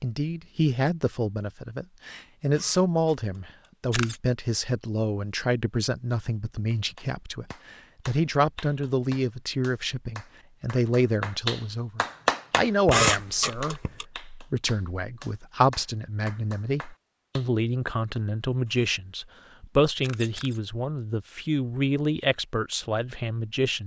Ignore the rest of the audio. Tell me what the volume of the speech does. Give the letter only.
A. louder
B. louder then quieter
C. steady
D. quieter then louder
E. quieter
C.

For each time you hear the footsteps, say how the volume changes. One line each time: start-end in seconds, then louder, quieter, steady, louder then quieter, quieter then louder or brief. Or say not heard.
not heard.